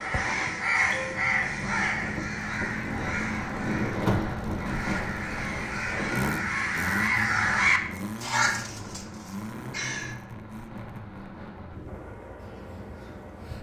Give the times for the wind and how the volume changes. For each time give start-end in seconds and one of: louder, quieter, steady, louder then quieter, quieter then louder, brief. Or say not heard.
0.0-13.5 louder then quieter.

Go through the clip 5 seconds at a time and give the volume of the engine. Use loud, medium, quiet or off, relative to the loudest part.
loud, loud, medium.